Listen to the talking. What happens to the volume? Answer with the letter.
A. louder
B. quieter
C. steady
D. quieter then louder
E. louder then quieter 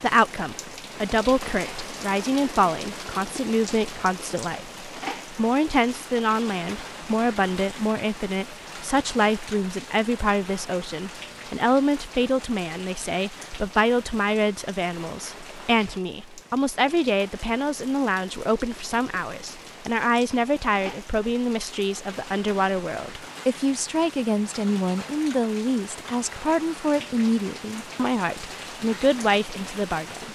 C.